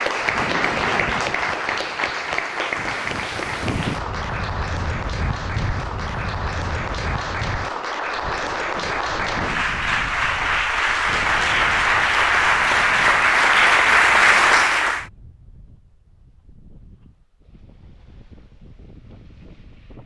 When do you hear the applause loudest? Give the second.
14 s.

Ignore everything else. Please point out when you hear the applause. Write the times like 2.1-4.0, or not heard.
0.0-15.1.